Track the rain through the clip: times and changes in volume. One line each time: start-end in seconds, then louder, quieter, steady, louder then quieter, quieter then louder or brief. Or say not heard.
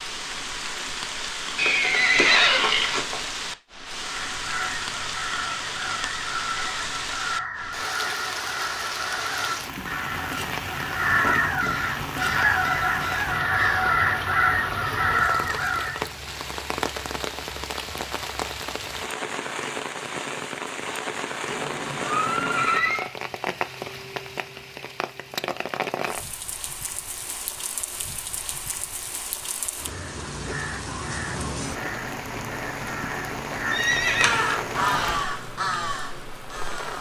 0.0-36.9 steady.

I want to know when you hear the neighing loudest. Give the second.
2 s.